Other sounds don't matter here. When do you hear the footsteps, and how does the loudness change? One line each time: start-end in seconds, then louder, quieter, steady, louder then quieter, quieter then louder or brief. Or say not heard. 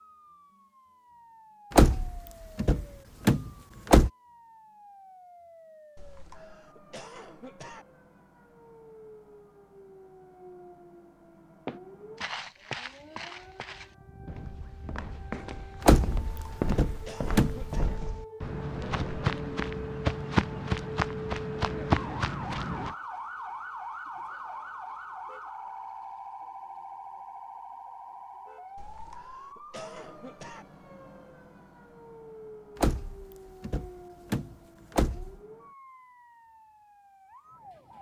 11.7-22.9 louder.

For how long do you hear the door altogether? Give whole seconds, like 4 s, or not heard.
7 s.